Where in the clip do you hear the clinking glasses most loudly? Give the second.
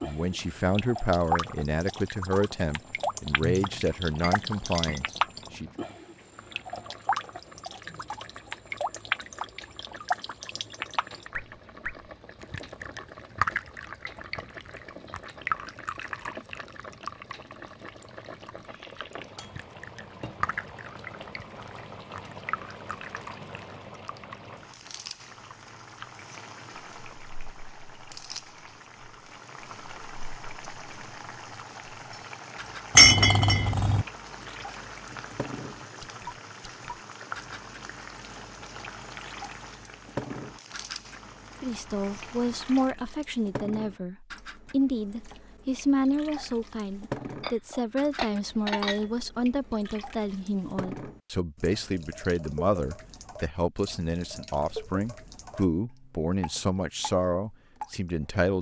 33 s.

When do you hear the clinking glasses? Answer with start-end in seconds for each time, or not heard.
3.4-5.0, 33.0-34.0, 47.4-49.0.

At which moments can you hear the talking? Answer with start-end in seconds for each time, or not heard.
0.0-5.7, 41.6-58.5.